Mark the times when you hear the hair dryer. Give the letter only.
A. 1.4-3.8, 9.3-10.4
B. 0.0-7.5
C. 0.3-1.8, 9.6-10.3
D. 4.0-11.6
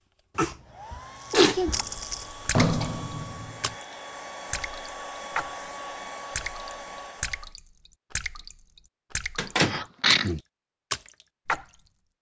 B.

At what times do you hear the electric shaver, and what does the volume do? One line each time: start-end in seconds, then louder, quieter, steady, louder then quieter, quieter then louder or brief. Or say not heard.
not heard.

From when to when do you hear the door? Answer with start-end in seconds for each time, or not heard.
1.4-3.8, 9.3-10.4.